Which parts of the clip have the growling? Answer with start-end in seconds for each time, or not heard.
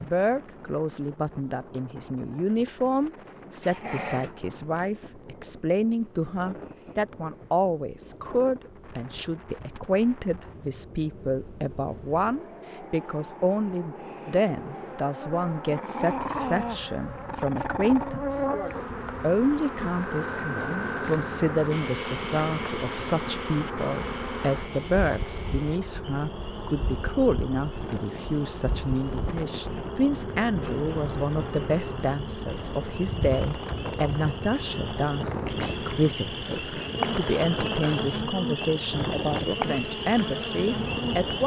3.6-4.3, 15.7-18.2, 36.4-38.2.